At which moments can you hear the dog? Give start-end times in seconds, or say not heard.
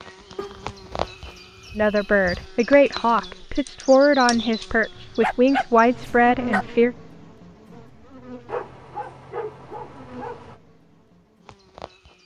0.3-2.5, 5.0-6.7, 8.4-10.6.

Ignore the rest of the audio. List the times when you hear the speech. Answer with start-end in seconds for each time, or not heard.
1.8-7.0.